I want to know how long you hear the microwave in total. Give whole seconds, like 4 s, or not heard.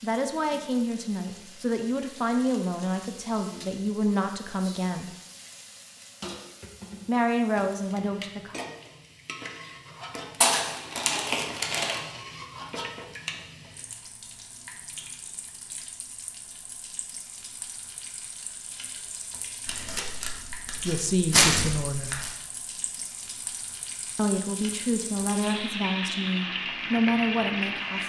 not heard.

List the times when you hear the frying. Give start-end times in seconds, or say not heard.
0.0-28.0.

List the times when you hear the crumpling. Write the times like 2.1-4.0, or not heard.
10.4-12.0, 19.6-22.3.